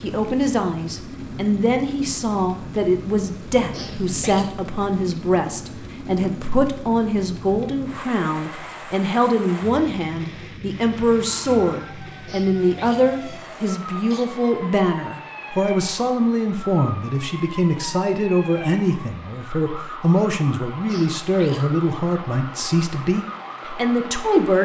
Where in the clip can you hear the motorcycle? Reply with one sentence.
The motorcycle can't be heard in this clip.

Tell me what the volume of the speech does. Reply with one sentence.
The volume of the speech stays about the same.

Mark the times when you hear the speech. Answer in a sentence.
The speech can be heard from 0.0 to 24.6 s.